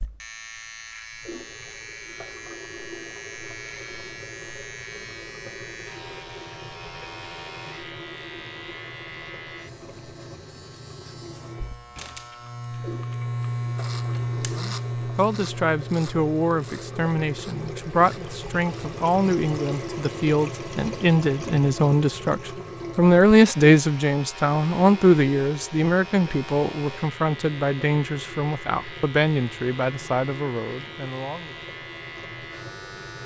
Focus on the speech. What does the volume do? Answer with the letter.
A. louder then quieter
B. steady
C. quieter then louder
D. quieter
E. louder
A.